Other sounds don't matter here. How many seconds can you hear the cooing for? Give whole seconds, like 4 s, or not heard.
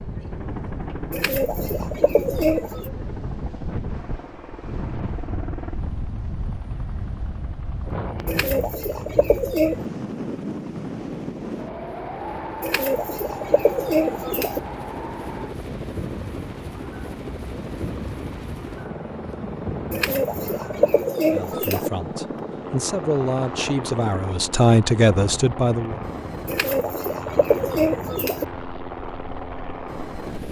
9 s.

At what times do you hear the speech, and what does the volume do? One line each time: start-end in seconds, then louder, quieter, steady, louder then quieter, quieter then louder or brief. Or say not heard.
21.3-26.0 louder.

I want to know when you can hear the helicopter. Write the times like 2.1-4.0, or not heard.
0.0-30.4.